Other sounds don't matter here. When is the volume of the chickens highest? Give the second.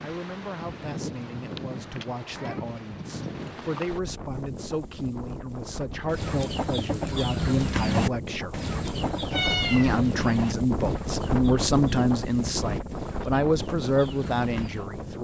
8 s.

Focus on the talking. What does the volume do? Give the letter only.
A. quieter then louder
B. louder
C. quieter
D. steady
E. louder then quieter
B.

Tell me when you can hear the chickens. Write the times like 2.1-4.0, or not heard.
6.0-14.9.